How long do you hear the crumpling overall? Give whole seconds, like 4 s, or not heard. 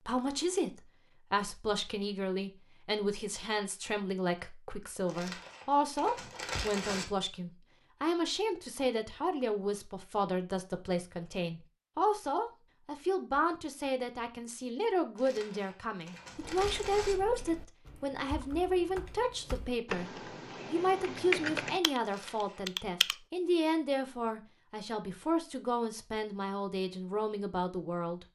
5 s.